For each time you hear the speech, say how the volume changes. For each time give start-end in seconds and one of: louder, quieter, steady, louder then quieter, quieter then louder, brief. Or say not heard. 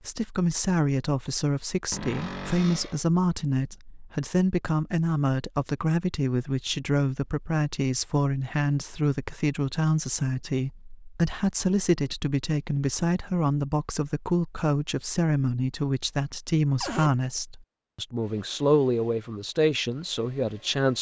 0.1-20.9 steady.